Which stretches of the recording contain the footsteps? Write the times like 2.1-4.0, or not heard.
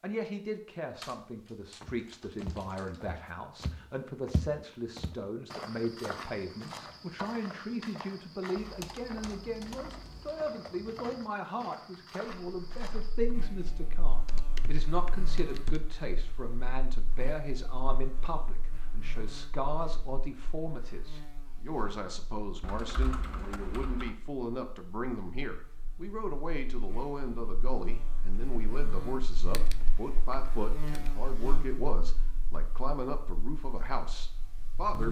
1.8-13.3.